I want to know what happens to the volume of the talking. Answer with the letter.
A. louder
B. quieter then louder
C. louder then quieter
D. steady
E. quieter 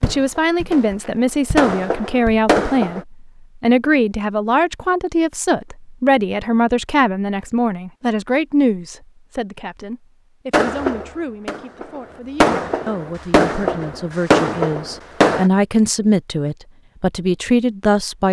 B.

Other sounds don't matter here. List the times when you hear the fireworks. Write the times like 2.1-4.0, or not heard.
0.0-3.0, 10.5-15.5.